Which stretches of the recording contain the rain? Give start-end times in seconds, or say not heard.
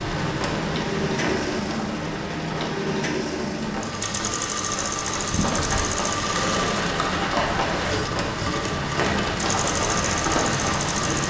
0.0-11.2.